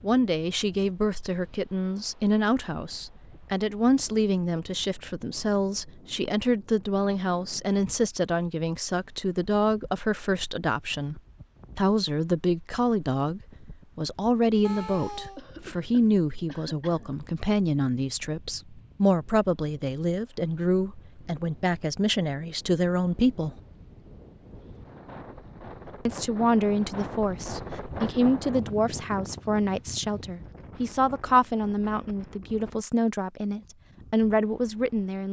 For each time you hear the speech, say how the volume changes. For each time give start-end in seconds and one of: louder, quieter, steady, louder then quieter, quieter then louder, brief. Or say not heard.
0.0-23.5 steady
26.1-35.2 steady.